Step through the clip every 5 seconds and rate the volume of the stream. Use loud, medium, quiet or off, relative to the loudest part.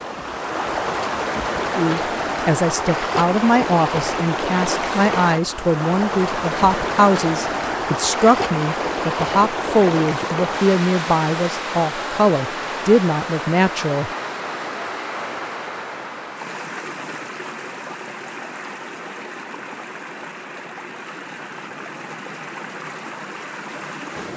loud, loud, loud, medium, medium.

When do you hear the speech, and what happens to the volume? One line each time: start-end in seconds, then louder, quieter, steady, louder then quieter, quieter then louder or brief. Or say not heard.
1.8-14.1 steady.